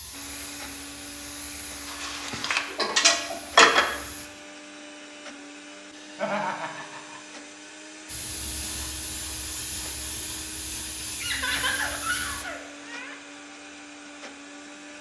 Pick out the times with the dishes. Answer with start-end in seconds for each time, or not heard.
1.9-3.9.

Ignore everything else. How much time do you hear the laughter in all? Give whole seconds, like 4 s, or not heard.
4 s.